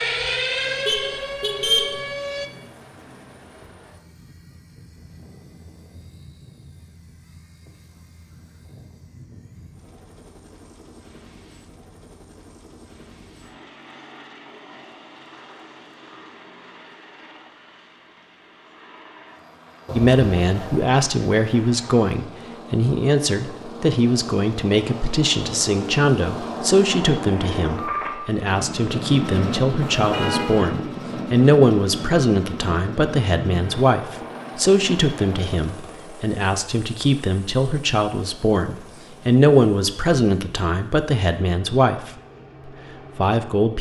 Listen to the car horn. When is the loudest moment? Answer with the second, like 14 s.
2 s.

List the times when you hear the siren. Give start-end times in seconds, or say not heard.
0.0-2.5.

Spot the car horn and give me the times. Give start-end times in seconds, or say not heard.
0.8-2.0, 19.9-20.9, 29.8-30.7.